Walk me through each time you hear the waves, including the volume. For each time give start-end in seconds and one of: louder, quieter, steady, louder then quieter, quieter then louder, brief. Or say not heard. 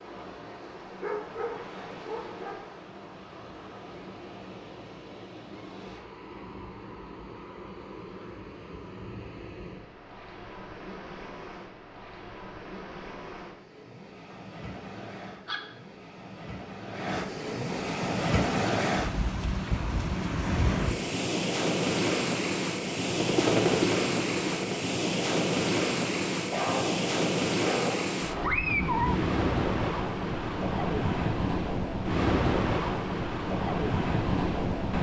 0.0-34.9 louder.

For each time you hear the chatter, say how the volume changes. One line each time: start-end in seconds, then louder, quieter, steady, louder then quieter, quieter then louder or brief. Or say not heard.
not heard.